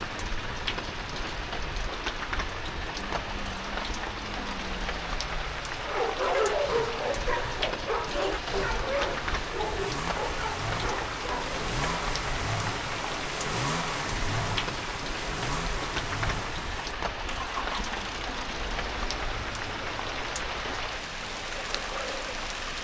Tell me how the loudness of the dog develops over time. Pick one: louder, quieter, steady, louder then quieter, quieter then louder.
quieter.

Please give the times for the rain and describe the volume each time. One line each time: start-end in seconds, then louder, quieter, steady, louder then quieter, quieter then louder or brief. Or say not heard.
0.0-22.7 steady.